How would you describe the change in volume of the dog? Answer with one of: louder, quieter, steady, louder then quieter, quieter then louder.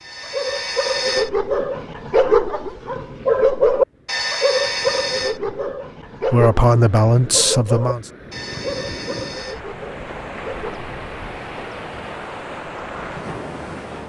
quieter.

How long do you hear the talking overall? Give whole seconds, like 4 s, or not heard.
2 s.